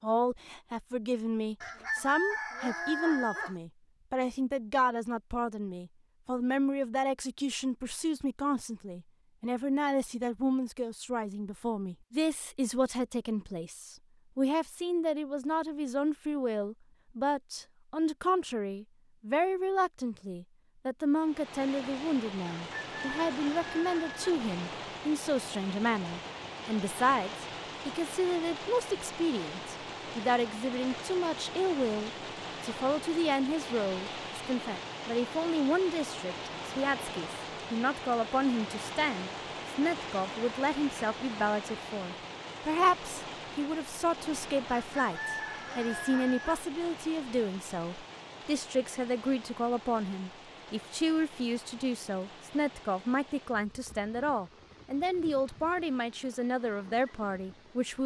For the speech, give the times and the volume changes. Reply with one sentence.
You can hear the speech from 0.0 to 58.0 s, at a steady volume.